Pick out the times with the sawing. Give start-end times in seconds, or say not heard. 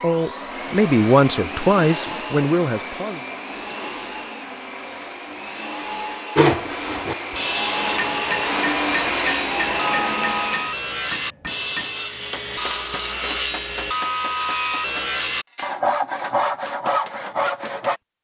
6.3-18.0.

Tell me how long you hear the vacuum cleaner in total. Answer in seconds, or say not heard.
11 s.